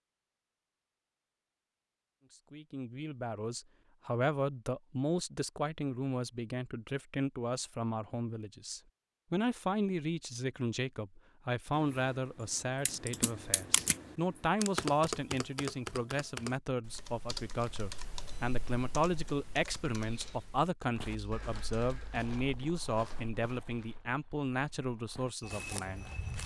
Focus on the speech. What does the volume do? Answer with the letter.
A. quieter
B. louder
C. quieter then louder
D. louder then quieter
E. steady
E.